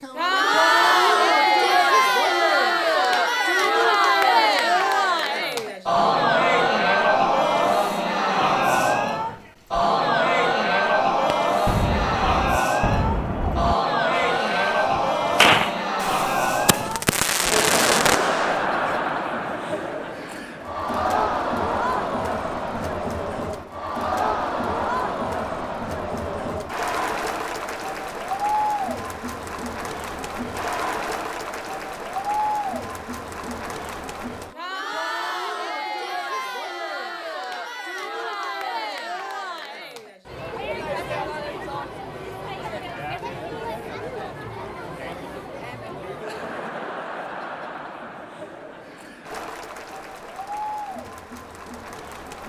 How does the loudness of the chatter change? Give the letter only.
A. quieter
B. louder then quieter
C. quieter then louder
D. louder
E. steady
A.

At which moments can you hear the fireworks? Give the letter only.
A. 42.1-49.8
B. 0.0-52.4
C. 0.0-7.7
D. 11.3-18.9
D.